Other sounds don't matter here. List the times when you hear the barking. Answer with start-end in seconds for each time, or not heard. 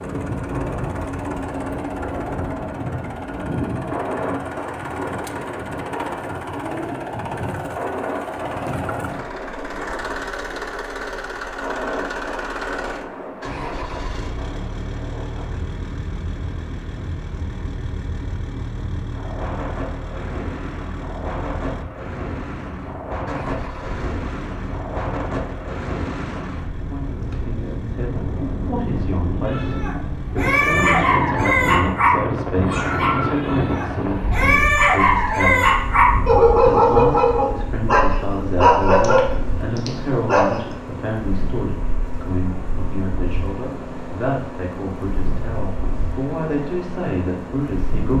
29.4-40.6.